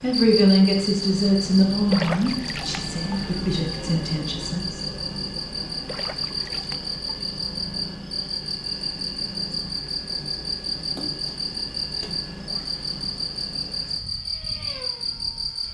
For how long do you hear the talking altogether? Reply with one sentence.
You can hear the talking for 5 seconds altogether.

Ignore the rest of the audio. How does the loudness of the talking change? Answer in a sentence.
The volume of the talking goes down.